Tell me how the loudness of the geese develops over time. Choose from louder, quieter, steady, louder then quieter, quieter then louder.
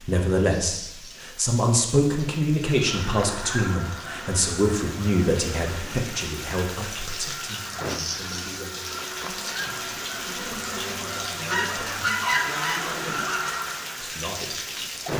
quieter then louder.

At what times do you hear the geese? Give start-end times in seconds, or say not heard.
2.6-14.1.